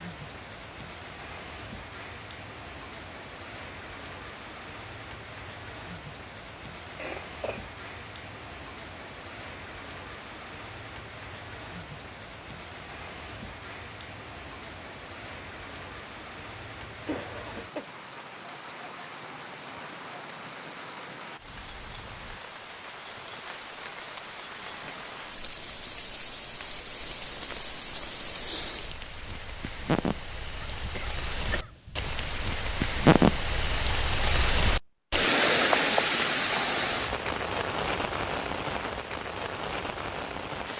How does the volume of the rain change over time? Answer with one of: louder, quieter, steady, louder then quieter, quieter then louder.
louder.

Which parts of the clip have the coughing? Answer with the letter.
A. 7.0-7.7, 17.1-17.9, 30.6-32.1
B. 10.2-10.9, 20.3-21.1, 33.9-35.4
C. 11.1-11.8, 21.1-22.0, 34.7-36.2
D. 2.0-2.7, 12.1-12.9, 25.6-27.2
A.